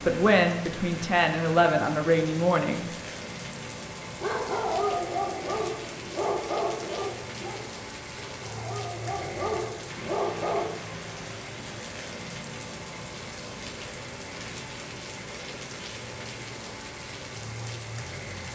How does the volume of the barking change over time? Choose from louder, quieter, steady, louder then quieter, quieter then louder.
quieter then louder.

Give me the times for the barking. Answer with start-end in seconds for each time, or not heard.
4.0-10.8.